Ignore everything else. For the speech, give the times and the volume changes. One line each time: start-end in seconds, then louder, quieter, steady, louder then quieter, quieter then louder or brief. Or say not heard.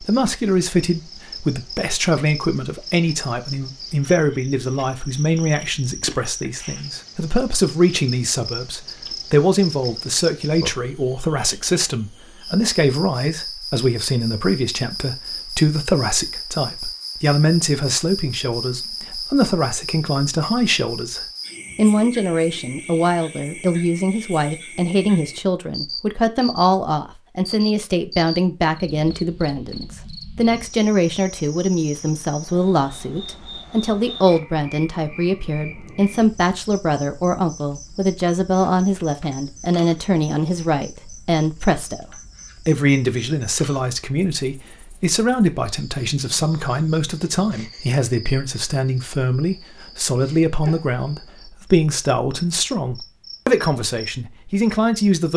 0.0-55.3 steady.